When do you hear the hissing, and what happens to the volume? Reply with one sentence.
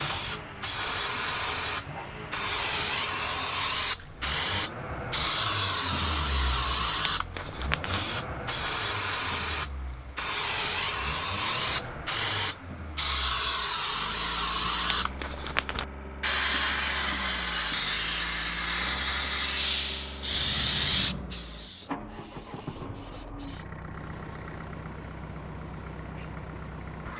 You can hear the hissing from 0.0 to 27.1 s, getting quieter.